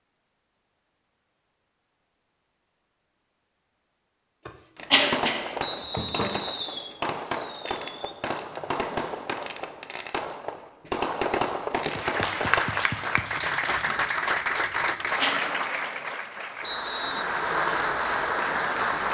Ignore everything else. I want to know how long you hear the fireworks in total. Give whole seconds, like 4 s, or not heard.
8 s.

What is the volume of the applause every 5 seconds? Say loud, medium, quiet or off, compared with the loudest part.
off, off, loud, loud.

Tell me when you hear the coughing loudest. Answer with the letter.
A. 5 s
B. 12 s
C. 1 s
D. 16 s
A.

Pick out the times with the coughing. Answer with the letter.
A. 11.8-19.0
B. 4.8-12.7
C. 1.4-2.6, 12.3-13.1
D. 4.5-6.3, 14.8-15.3
D.